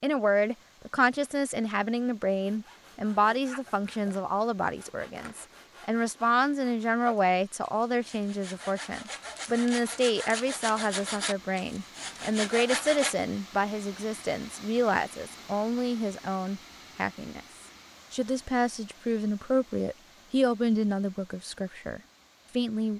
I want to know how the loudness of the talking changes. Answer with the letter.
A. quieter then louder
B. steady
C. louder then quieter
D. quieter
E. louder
B.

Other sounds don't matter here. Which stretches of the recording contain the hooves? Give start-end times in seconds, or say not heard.
not heard.